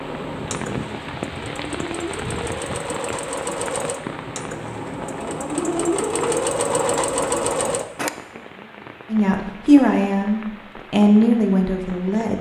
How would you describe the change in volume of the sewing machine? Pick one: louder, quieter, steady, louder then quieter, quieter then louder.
louder.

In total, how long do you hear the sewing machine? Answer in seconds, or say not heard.
8 s.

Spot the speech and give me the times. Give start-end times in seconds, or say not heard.
9.1-12.3.